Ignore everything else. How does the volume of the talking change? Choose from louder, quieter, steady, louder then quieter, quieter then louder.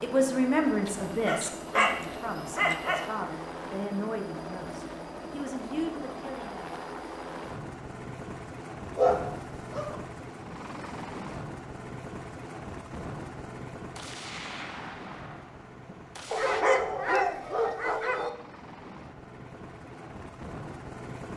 quieter.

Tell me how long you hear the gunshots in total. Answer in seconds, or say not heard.
3 s.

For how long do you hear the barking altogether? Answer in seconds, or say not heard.
5 s.